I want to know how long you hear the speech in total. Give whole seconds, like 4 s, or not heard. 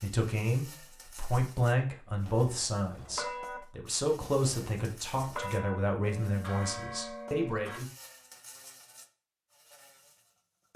8 s.